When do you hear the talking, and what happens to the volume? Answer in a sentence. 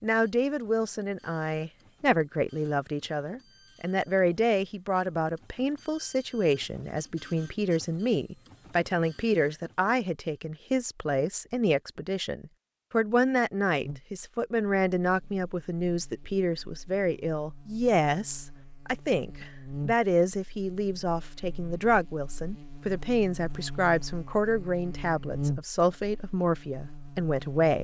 You can hear the talking from 0.0 to 27.7 s, at a steady volume.